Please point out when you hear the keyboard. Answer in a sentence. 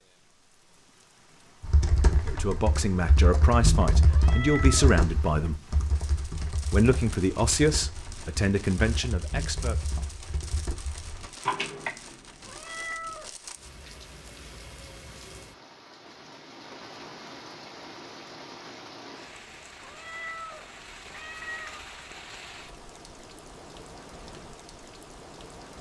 You can hear the keyboard from 1.6 to 11.9 s.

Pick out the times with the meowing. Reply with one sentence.
You can hear the meowing from 4.1 to 4.9 s, from 12.4 to 13.3 s and from 19.8 to 21.8 s.